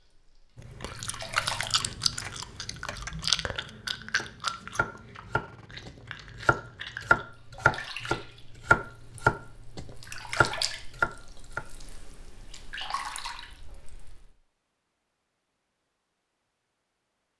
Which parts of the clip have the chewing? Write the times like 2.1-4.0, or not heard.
0.6-7.2.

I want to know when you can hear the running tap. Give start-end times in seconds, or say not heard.
0.0-1.8, 7.2-14.3.